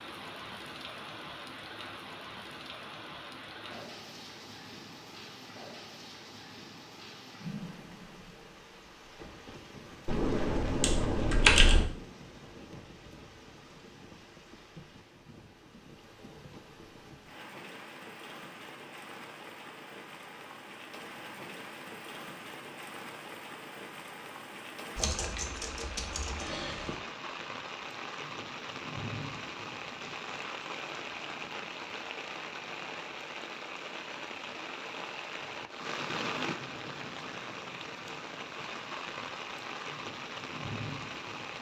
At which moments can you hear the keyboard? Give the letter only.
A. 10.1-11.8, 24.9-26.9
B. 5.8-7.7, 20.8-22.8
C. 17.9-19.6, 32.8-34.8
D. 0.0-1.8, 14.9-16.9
A.